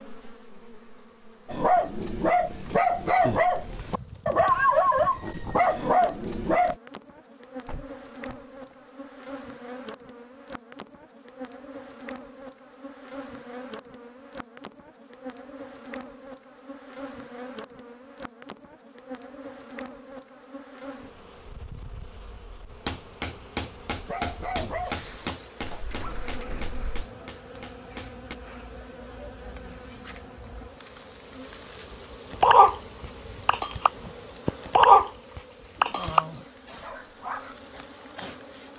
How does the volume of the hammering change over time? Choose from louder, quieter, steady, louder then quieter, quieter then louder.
quieter.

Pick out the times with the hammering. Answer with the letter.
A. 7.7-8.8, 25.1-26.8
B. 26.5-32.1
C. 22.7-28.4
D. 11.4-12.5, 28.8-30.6
C.